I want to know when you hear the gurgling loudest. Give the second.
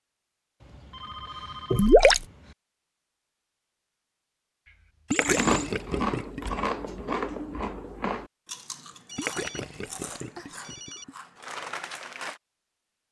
2 s.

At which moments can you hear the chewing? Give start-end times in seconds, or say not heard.
5.2-12.4.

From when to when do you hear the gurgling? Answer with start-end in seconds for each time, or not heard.
1.7-2.2, 5.1-6.4, 9.2-11.1.